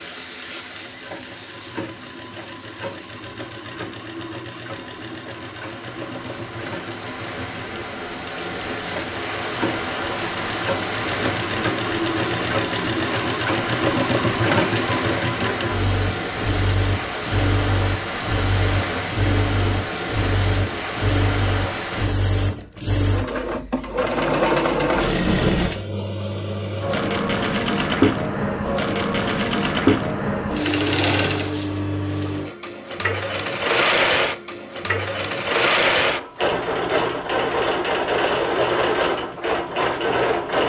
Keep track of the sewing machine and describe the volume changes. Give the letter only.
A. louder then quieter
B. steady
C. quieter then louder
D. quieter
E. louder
E.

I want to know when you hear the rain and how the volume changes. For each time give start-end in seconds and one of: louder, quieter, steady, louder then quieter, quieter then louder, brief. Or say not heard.
0.0-22.1 louder.